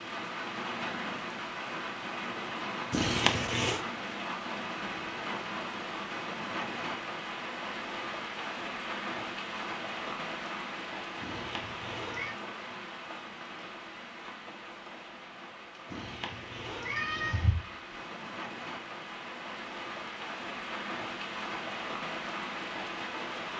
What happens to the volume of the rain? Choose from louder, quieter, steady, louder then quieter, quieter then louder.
quieter then louder.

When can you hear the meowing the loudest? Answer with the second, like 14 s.
3 s.